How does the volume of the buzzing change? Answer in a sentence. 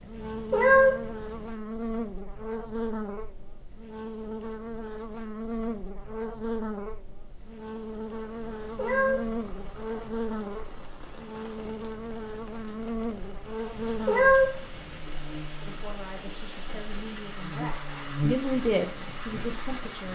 The loudness of the buzzing stays about the same.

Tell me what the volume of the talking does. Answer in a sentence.
The volume of the talking goes up, then down.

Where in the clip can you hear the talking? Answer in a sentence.
You can hear the talking from 15.7 to 20.1 s.